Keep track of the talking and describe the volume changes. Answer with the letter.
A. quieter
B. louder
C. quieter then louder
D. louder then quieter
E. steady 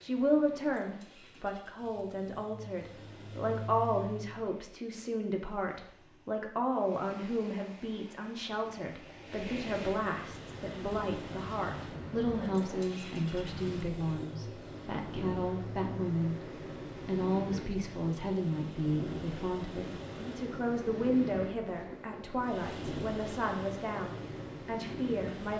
E.